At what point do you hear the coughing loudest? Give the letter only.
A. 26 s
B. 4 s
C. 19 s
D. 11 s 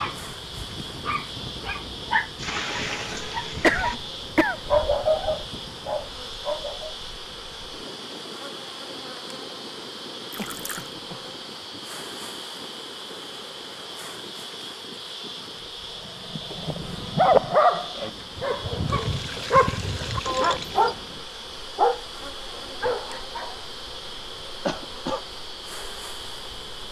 B.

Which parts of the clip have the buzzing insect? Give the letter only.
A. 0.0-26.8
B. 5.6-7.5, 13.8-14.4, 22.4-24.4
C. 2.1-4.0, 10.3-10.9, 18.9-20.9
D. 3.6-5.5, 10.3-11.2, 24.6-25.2
A.